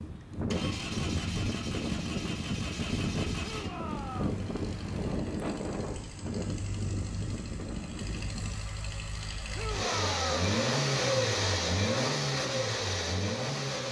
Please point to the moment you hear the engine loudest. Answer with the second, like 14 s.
11 s.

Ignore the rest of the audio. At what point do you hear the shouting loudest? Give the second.
10 s.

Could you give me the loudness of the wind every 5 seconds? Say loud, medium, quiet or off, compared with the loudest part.
loud, loud, off.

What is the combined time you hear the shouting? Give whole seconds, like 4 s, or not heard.
2 s.